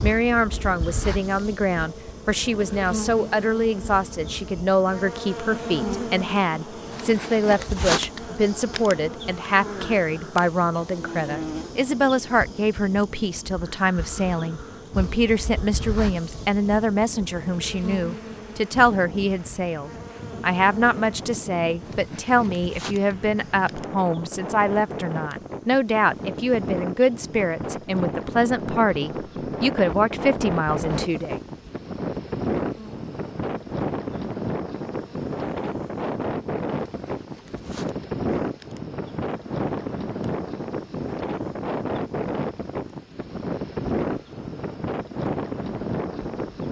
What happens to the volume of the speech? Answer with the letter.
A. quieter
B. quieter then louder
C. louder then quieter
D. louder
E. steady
E.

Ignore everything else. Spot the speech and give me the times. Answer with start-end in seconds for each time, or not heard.
0.0-31.4.